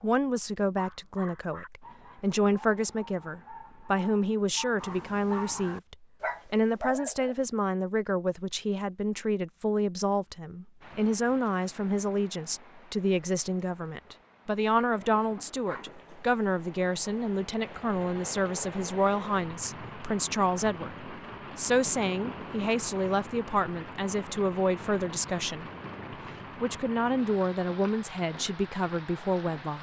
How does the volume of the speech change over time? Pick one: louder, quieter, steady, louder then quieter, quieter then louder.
steady.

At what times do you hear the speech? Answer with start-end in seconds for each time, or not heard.
0.0-25.7, 26.6-29.7.